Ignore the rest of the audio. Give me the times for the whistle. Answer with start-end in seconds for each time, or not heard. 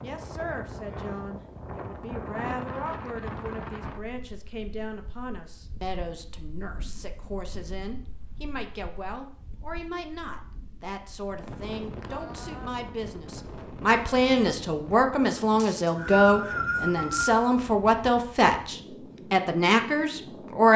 15.6-17.4.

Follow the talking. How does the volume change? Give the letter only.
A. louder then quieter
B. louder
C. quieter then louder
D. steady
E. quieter
B.